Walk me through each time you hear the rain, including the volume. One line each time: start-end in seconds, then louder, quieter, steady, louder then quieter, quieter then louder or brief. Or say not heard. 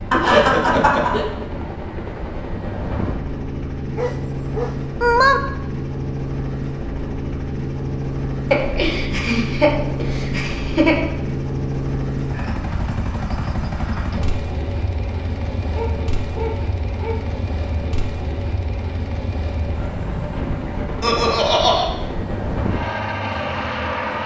not heard.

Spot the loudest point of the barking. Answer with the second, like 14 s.
5 s.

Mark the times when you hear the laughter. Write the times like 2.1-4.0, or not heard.
0.1-1.2, 8.5-10.9, 21.0-21.9.